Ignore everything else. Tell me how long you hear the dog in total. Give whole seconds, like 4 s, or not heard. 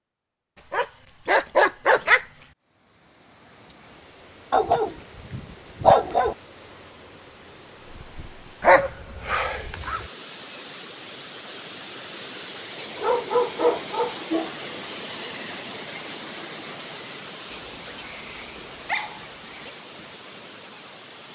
9 s.